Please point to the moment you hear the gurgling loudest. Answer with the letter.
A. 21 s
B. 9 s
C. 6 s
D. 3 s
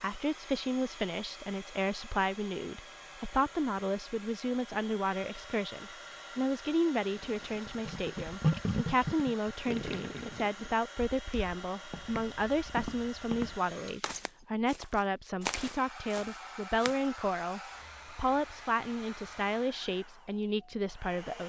B.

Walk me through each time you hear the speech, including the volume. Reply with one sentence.
The speech can be heard from 0.0 to 21.4 s, at a steady volume.